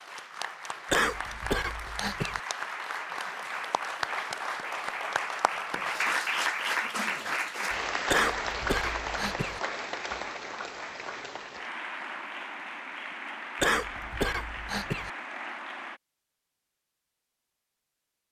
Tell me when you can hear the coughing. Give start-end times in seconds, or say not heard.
0.9-2.4, 8.1-9.6, 13.6-15.1.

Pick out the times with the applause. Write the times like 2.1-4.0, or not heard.
0.0-16.0.